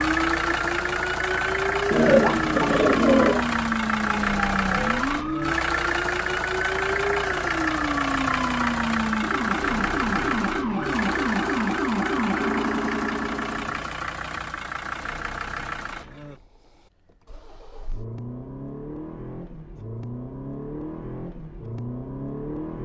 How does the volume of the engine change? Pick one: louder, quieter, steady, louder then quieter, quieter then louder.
quieter.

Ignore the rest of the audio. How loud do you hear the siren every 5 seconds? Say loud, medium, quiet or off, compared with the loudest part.
loud, loud, loud, off, off.